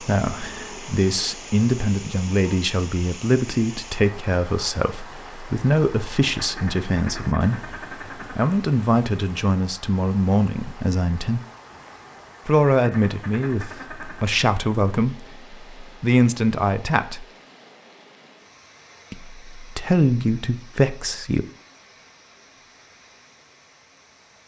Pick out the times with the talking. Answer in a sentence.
You can hear the talking from 0.0 to 11.4 s, from 12.4 to 17.2 s and from 19.1 to 21.4 s.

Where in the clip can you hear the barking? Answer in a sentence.
The barking can't be heard in this clip.